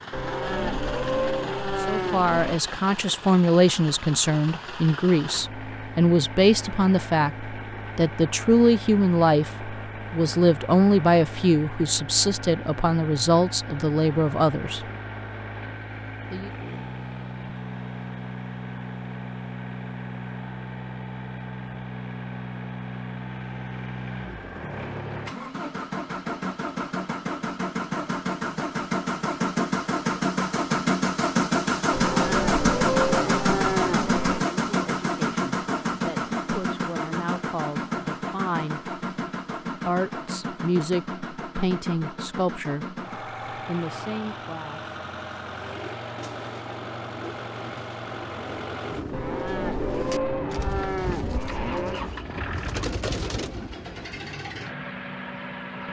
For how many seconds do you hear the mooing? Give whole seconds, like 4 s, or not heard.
8 s.